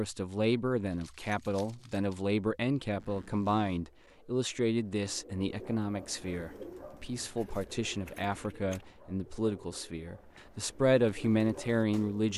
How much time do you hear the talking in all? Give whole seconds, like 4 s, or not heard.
12 s.